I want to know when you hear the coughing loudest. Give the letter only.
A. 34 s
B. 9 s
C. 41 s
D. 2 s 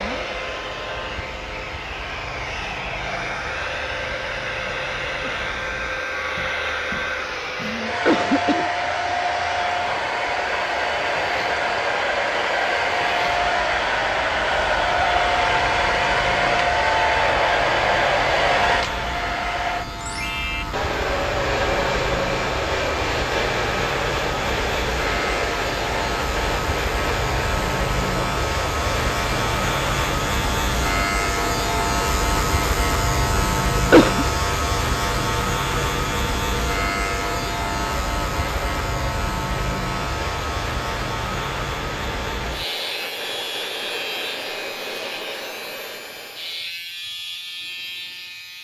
A.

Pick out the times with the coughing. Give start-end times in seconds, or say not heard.
7.9-8.7, 33.8-34.2.